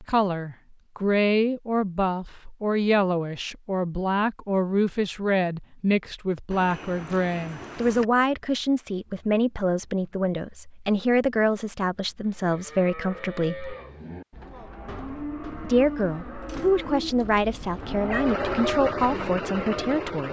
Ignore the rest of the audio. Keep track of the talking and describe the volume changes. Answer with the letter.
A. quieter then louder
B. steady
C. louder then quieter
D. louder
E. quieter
B.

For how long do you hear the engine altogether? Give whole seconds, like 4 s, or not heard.
2 s.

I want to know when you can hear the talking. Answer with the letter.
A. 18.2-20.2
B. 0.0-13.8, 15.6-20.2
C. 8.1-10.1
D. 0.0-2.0
B.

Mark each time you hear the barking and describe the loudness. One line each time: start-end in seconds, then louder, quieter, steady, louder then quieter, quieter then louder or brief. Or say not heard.
not heard.